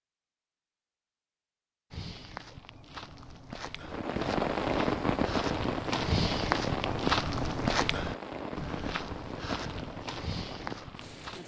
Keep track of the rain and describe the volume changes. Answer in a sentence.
The loudness of the rain goes down.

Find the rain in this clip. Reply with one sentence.
You can hear the rain from 3.8 to 11.4 s.